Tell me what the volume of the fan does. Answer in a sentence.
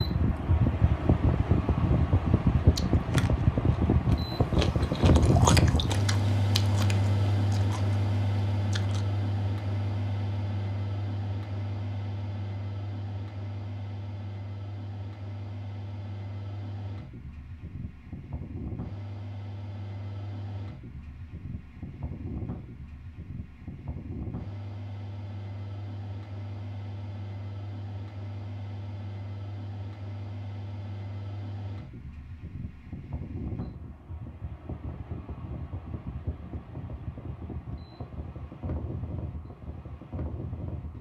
The volume of the fan goes down.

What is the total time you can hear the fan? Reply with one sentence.
You can hear the fan for 41 seconds altogether.